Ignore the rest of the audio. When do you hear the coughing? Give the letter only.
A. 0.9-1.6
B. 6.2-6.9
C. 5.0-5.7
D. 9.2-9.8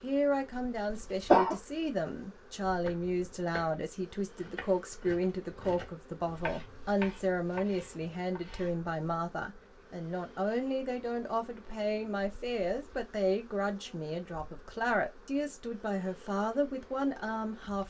A.